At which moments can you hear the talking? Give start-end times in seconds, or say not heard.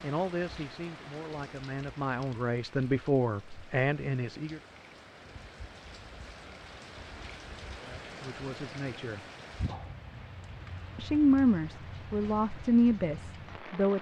0.0-4.6, 7.8-9.2, 10.9-13.9.